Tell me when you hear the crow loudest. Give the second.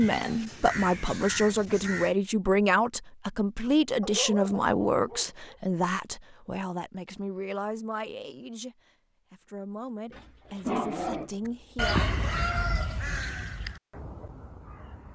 12 s.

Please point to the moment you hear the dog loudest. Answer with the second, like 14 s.
11 s.